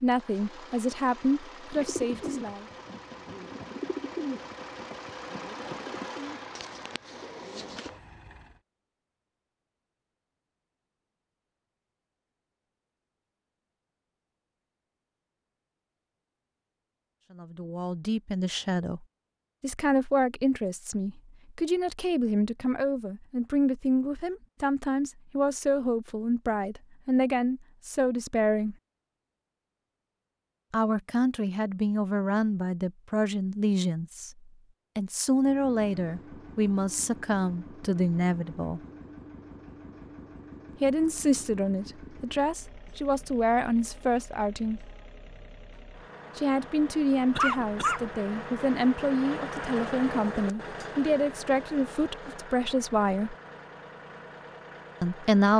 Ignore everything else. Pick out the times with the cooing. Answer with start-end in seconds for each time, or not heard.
1.8-7.9.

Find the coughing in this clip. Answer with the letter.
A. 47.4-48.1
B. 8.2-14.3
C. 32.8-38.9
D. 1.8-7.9
A.